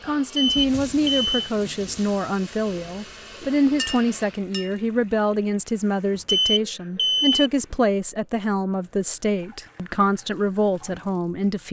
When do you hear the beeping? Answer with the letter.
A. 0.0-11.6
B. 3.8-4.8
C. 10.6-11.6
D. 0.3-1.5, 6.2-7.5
D.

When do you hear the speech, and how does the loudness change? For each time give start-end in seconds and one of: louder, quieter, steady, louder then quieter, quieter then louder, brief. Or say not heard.
0.0-11.6 steady.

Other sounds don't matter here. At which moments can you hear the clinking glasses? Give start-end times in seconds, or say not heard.
3.8-4.8.